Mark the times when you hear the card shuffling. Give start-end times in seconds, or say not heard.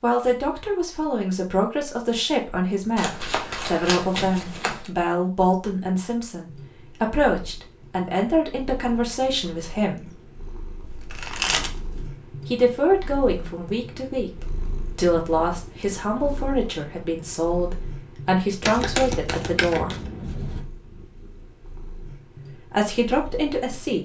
3.0-4.9, 10.8-12.1, 18.6-20.6.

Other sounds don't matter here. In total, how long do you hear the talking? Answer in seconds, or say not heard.
19 s.